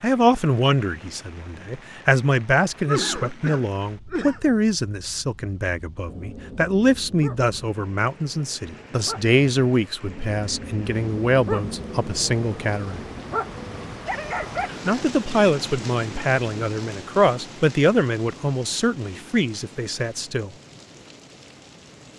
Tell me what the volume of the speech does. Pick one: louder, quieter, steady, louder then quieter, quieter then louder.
steady.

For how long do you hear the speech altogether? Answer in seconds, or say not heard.
19 s.